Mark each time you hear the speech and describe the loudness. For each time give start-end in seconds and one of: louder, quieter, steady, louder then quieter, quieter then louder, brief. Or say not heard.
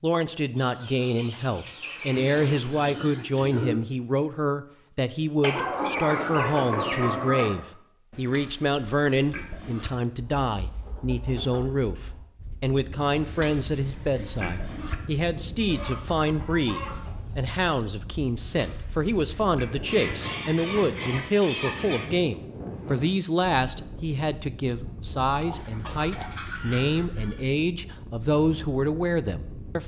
0.0-29.8 steady.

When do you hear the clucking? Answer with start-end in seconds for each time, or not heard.
0.6-3.0, 5.4-7.5, 10.2-12.2, 15.6-17.4, 19.9-22.1, 25.5-27.4.